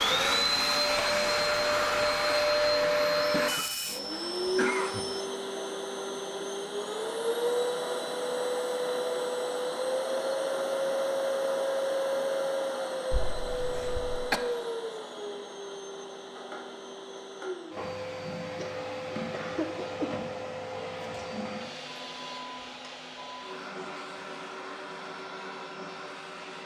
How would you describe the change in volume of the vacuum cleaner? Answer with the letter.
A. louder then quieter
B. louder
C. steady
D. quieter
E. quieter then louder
D.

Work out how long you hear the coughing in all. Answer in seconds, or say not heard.
5 s.